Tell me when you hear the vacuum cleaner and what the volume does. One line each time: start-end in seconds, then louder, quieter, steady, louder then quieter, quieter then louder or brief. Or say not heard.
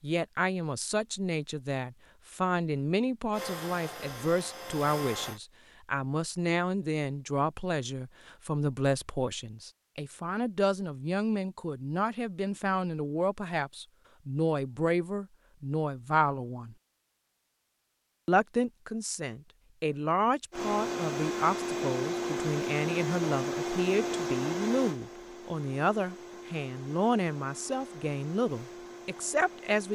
3.3-5.4 brief
20.5-29.8 quieter.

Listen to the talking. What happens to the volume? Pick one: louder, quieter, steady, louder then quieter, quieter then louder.
steady.